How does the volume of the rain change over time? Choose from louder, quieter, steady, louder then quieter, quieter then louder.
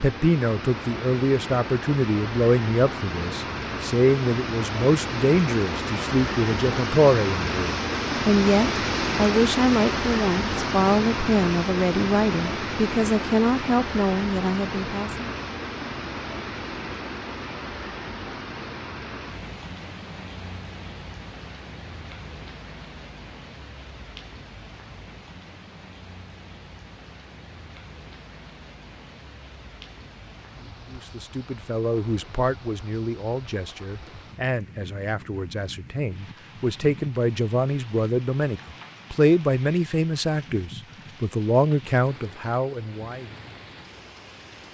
quieter.